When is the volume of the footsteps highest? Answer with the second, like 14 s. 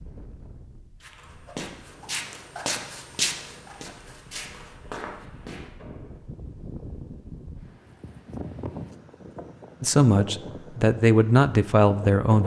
3 s.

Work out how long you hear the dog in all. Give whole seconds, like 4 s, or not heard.
not heard.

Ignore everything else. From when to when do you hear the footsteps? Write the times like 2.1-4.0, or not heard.
1.0-6.1.